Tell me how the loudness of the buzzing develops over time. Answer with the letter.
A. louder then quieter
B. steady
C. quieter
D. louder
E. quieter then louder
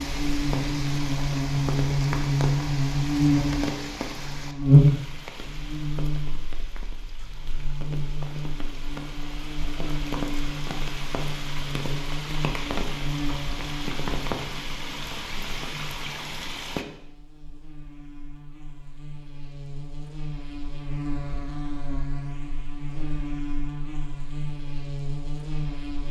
E.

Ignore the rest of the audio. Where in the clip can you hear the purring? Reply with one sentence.
The purring can't be heard in this clip.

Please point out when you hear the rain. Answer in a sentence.
You can hear the rain from 0.0 to 16.9 s.